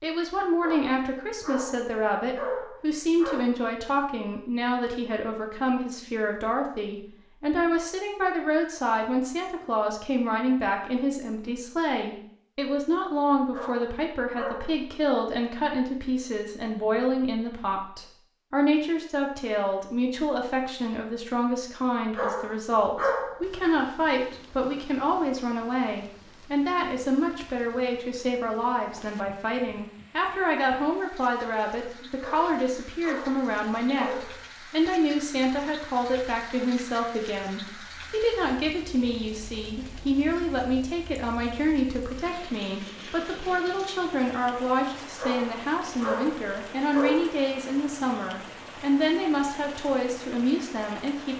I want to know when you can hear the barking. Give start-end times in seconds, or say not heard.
0.6-3.5, 13.5-14.9, 22.1-23.5, 32.2-34.4, 45.1-47.4.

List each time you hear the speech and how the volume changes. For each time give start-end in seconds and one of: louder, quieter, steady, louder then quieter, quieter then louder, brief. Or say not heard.
0.0-51.3 steady.